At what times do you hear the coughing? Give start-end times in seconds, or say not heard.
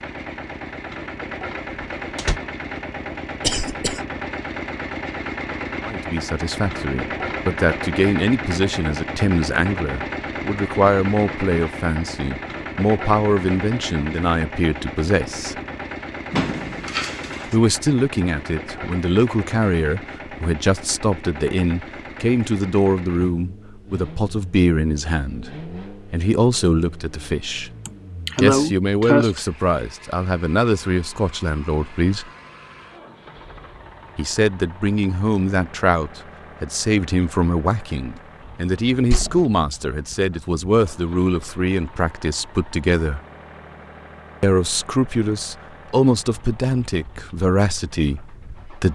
3.4-4.0, 27.9-29.4.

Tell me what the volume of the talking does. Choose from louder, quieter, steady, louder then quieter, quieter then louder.
steady.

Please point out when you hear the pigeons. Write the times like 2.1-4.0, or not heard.
not heard.